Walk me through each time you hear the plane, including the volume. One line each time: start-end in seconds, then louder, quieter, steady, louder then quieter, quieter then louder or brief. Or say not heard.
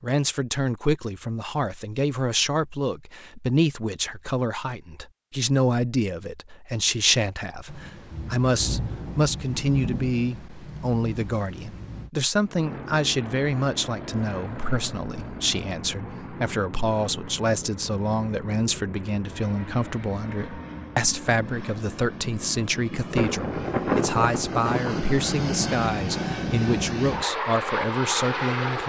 12.4-28.8 louder.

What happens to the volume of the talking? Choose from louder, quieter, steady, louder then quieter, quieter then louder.
steady.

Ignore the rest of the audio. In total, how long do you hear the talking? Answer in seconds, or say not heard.
29 s.